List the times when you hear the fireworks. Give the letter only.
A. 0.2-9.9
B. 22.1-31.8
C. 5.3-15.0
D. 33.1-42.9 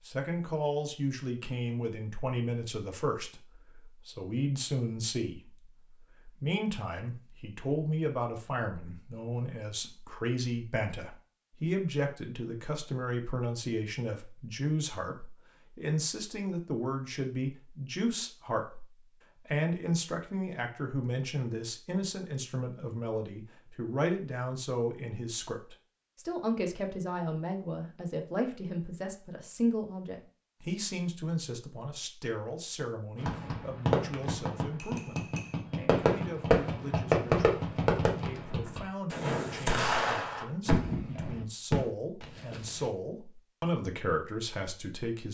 D.